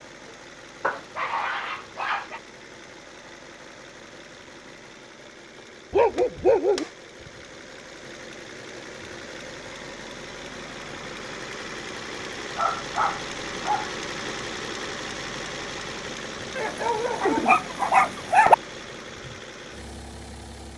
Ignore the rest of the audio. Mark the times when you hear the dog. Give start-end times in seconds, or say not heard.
0.8-2.4, 5.9-6.8, 12.6-13.9, 16.6-18.6.